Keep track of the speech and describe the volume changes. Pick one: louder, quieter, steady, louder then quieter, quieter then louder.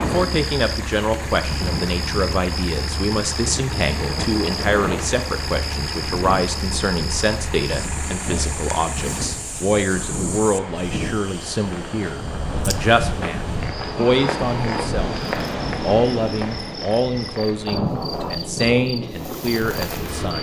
steady.